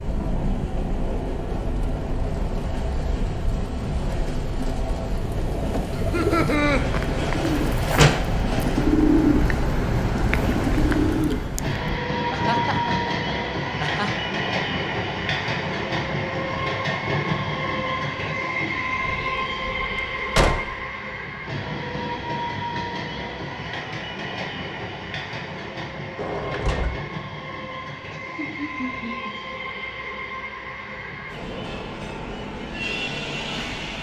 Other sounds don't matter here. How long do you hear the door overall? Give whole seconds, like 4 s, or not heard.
3 s.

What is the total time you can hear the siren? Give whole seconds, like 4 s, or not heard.
not heard.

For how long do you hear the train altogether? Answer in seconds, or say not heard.
34 s.